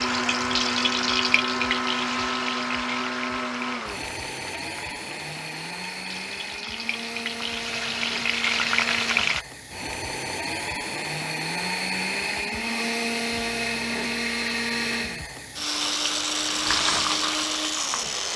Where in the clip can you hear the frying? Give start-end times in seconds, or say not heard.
0.0-9.4, 15.7-18.3.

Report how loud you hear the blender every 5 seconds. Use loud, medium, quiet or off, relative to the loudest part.
loud, medium, loud, loud.